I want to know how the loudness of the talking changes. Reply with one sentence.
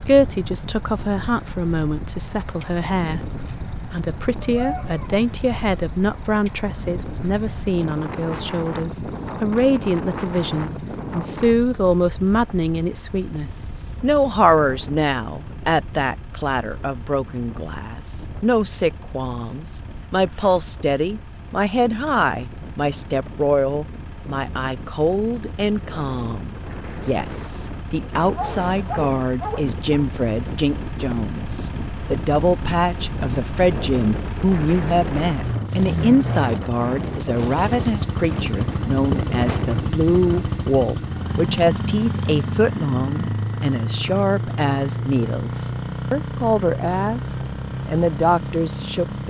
The volume of the talking stays about the same.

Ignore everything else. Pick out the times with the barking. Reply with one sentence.
The barking can be heard from 4.4 to 5.2 s and from 28.4 to 30.1 s.